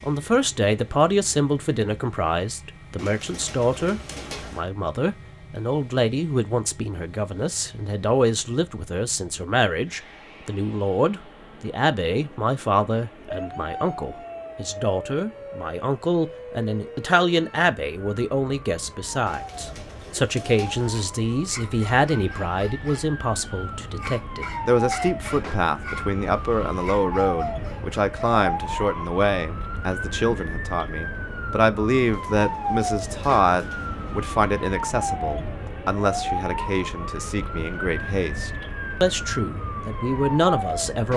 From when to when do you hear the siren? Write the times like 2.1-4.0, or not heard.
13.2-41.1.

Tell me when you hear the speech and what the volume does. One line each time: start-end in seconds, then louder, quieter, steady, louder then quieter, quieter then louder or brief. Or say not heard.
0.0-41.1 steady.